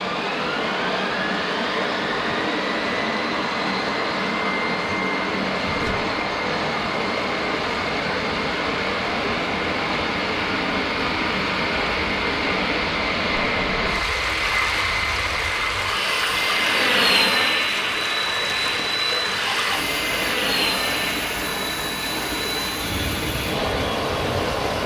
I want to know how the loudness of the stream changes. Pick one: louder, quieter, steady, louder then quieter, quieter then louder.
steady.